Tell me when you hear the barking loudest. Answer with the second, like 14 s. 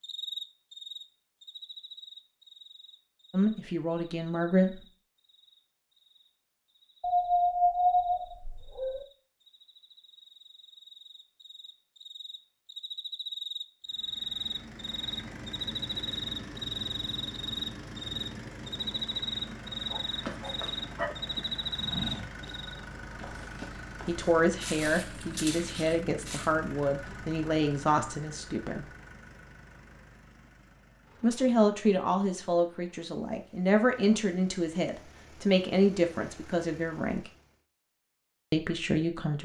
8 s.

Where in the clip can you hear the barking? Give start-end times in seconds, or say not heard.
7.0-9.1, 19.9-21.1.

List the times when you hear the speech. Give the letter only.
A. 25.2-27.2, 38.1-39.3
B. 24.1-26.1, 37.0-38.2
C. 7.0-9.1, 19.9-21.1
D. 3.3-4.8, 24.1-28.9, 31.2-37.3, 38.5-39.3
D.